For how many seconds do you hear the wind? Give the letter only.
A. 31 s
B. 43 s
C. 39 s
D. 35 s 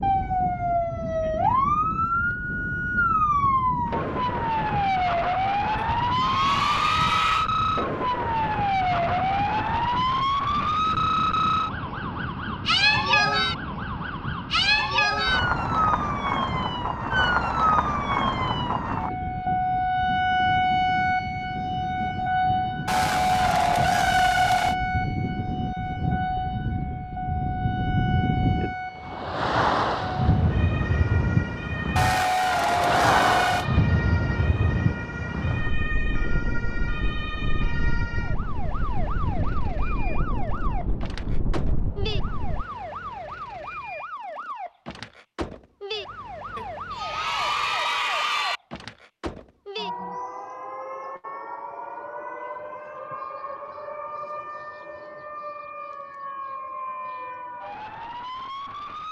B.